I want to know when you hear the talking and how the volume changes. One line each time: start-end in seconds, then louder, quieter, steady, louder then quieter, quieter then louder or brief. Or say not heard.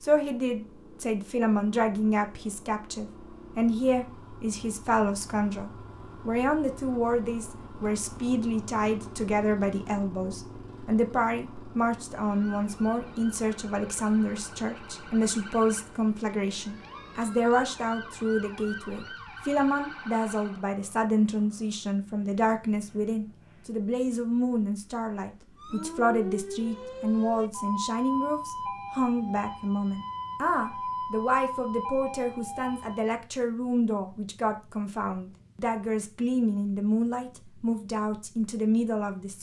0.0-39.3 steady.